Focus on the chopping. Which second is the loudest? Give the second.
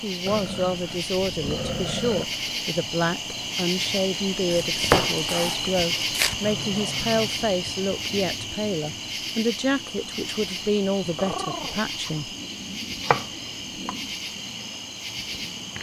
5 s.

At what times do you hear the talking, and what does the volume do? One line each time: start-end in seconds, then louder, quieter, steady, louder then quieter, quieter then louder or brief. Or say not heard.
0.0-12.3 steady.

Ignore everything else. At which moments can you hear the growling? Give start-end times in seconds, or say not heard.
0.2-2.2, 6.4-7.5, 11.2-11.8.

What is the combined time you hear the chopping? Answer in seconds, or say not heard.
3 s.